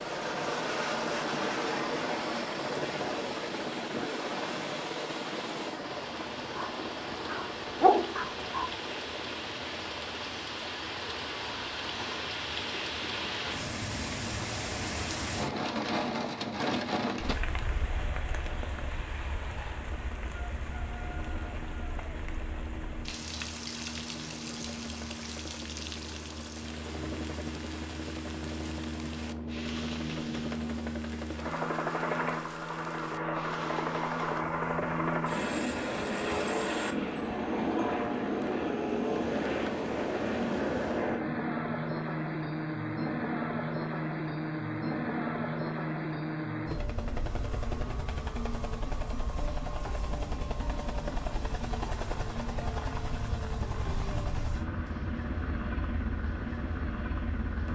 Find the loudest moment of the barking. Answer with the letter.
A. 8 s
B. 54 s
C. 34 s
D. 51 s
A.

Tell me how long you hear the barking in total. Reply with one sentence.
The barking can be heard for 2 seconds in total.